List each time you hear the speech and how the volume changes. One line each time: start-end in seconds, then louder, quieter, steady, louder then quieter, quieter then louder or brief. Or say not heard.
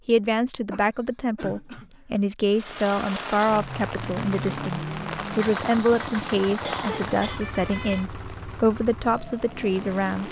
0.1-10.2 steady.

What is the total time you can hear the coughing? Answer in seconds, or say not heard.
2 s.